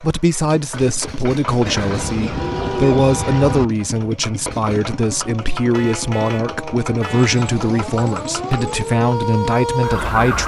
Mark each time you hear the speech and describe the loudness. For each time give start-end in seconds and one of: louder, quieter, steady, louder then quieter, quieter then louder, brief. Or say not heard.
0.0-10.4 steady.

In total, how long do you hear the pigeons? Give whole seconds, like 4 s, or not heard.
4 s.